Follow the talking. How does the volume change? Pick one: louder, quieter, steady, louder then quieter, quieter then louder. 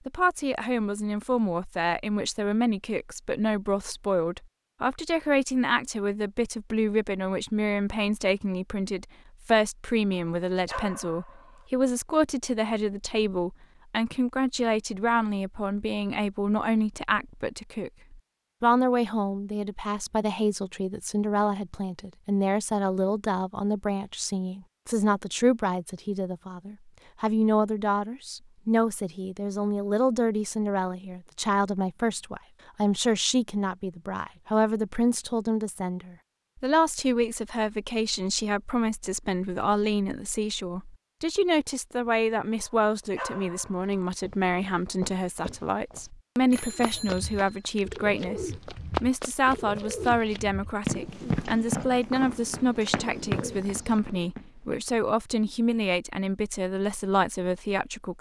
steady.